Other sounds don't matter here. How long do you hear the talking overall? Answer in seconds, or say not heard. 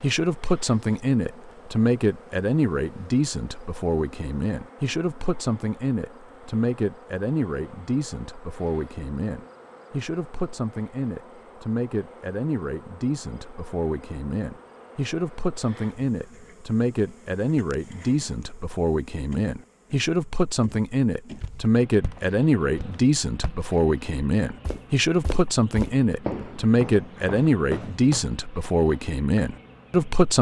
30 s.